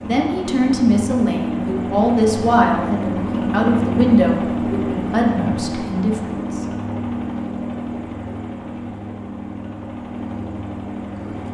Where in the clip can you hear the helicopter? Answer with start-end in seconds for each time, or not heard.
0.0-11.4.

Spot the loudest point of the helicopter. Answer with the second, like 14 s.
4 s.